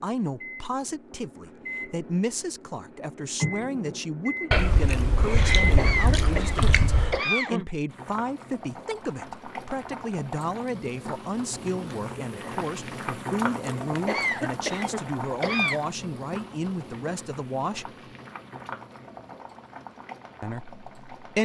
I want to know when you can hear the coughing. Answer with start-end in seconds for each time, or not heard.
5.8-7.7, 14.1-15.8.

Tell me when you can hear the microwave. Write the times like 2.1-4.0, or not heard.
0.0-6.3.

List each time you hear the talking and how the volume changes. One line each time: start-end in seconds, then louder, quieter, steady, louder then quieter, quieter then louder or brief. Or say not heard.
0.0-17.9 steady
20.4-21.4 brief.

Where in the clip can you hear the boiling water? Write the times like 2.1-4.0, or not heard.
7.8-21.4.